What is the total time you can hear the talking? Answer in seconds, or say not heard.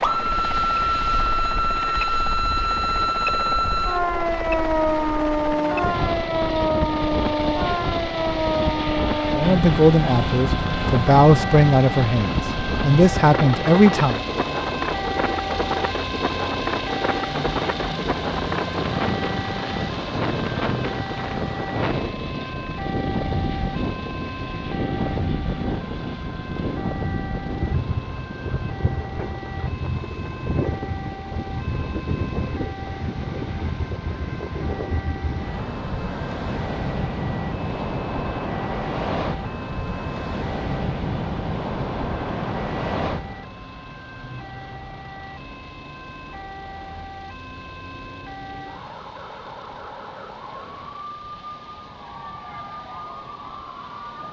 5 s.